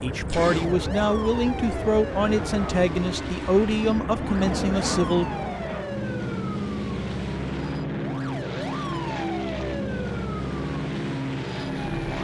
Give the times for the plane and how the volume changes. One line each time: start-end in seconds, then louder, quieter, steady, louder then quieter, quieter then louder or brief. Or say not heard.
0.0-12.1 steady.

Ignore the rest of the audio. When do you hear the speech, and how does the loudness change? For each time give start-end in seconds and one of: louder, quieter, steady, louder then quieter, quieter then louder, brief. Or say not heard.
0.0-5.2 steady.